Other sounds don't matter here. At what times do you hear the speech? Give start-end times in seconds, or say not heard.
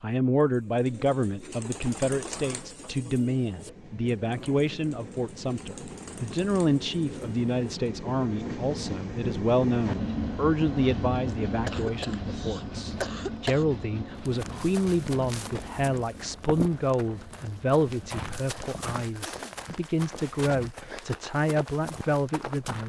0.0-22.8.